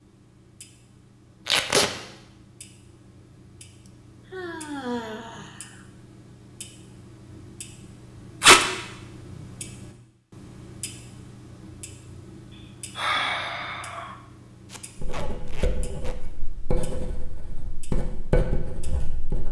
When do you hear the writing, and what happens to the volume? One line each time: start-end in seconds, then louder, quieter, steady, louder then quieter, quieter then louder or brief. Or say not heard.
14.9-19.4 louder.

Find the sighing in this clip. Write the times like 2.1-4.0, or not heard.
3.9-5.8, 12.9-14.2.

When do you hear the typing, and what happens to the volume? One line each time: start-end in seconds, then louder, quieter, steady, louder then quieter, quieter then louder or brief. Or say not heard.
not heard.